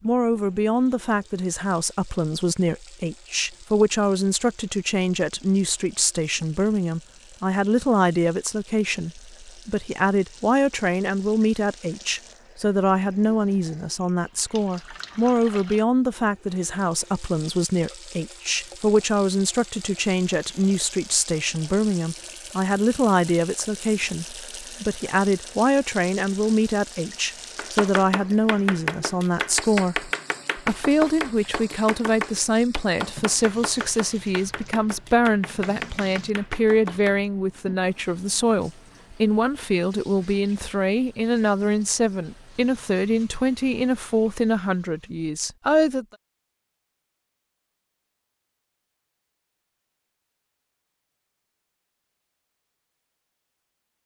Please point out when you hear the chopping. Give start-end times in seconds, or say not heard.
27.6-37.1.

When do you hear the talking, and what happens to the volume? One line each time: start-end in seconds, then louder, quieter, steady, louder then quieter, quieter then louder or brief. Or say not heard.
0.0-46.0 steady.